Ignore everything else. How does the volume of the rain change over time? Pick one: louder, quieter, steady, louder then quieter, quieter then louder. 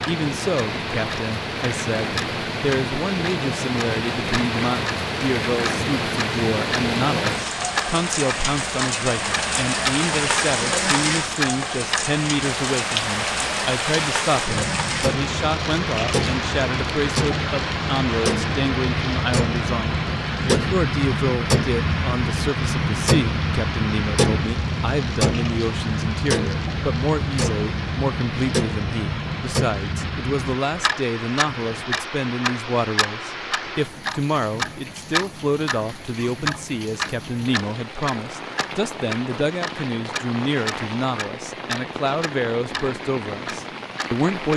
quieter.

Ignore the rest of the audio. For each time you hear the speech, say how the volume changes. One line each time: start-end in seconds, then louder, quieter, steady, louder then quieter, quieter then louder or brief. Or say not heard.
0.1-44.5 steady.